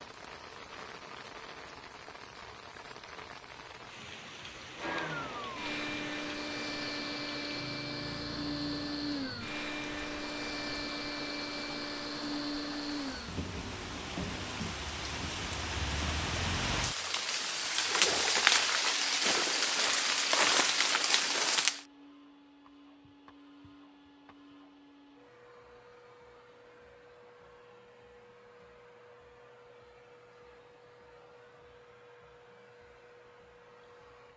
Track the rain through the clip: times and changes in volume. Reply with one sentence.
The rain can be heard from 0.0 to 21.9 s, getting louder.